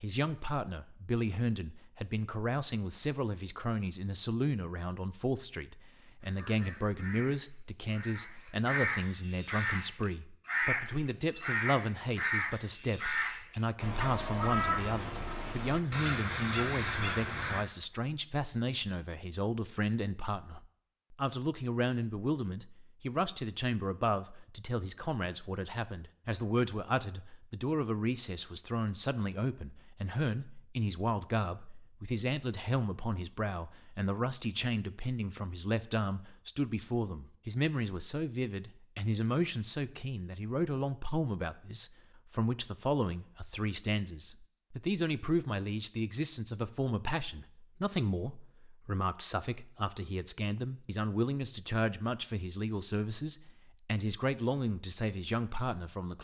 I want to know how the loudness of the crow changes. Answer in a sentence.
The volume of the crow goes up.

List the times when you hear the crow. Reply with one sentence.
You can hear the crow from 6.2 to 17.6 s.